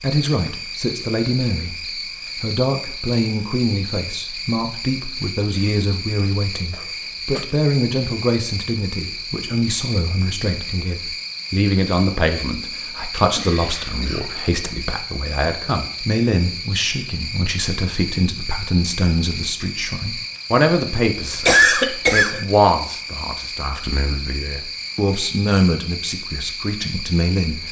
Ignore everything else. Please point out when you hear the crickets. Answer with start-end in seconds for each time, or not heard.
0.0-27.6.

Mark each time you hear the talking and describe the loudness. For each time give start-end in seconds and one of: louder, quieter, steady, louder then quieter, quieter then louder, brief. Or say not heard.
0.0-27.6 steady.